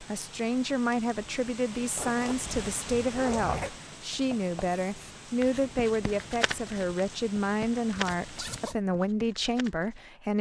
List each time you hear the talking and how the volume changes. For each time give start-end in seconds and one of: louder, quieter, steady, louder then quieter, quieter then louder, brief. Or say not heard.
0.0-10.3 steady.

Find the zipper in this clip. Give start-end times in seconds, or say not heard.
1.9-3.7, 8.0-8.8.